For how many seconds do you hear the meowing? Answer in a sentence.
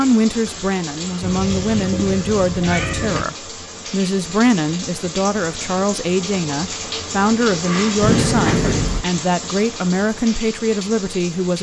You can hear the meowing for 3 seconds altogether.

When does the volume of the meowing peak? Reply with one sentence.
The volume of the meowing peaks at 8 seconds.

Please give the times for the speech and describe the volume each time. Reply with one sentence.
The speech can be heard from 0.0 to 11.5 s, at a steady volume.